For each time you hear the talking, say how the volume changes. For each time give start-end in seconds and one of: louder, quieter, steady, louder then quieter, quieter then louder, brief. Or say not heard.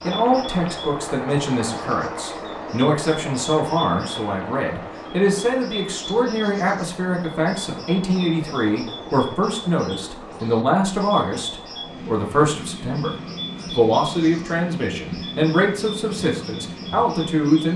0.0-17.7 steady.